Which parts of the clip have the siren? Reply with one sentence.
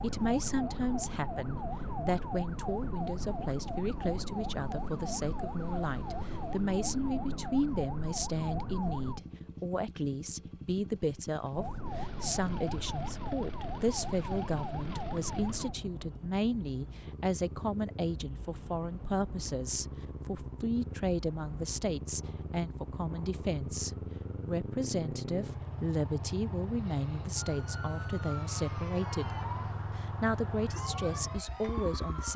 You can hear the siren from 0.0 to 9.2 s, from 11.5 to 15.8 s and from 27.4 to 32.3 s.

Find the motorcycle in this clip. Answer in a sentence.
The motorcycle can be heard from 0.0 to 32.3 s.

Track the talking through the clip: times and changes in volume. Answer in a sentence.
You can hear the talking from 0.0 to 29.4 s, at a steady volume; and briefly from 29.9 to 32.3 s.